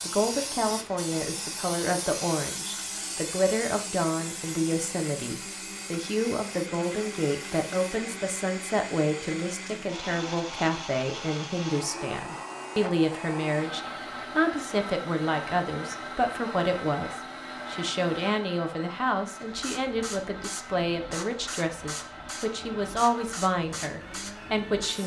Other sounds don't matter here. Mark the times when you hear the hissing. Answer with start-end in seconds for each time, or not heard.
0.0-8.0, 19.4-25.0.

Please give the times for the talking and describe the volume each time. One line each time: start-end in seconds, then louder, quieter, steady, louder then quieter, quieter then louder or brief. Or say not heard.
0.0-25.0 steady.